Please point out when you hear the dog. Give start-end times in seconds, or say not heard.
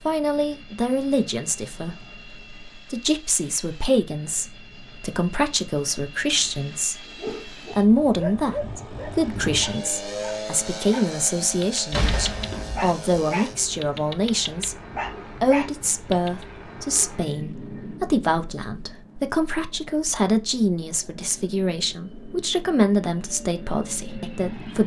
7.0-16.4.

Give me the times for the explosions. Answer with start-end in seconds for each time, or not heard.
11.9-13.0.